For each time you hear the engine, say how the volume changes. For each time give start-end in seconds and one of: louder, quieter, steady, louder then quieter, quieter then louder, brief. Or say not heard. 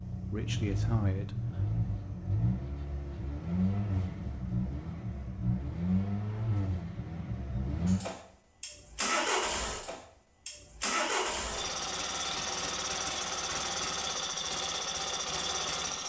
0.0-16.0 steady.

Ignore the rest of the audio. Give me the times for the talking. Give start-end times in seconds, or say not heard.
0.3-1.6.